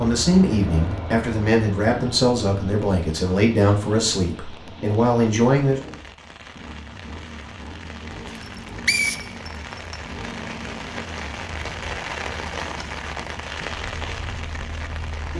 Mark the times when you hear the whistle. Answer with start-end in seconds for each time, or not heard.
8.3-9.9.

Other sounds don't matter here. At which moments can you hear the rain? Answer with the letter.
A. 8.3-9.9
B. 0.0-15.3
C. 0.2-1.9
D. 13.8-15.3
B.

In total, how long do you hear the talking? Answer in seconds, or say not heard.
6 s.